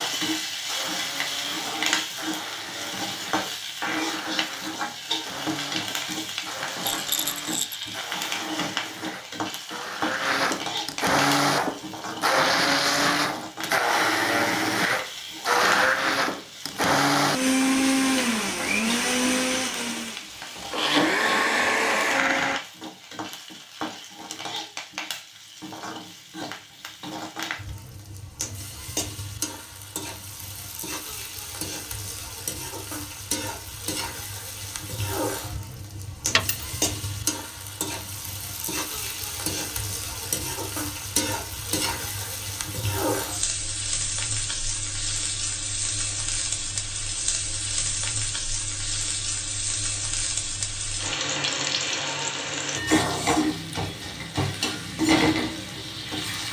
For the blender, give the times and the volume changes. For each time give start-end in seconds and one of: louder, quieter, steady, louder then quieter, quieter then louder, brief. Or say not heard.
0.0-22.6 louder.